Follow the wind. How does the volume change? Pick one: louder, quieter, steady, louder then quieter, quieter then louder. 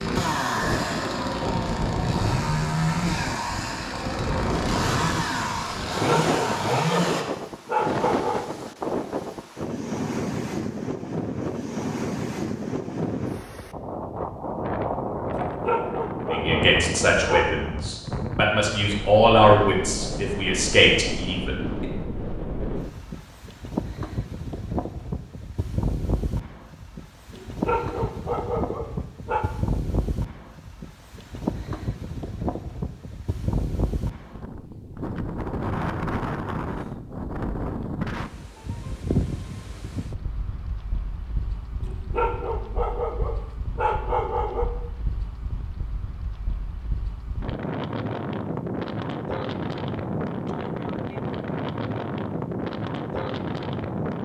steady.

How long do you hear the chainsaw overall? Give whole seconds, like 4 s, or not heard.
7 s.